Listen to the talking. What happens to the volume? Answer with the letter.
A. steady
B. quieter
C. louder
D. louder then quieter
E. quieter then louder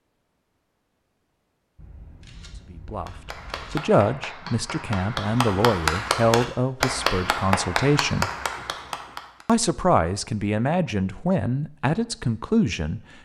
A.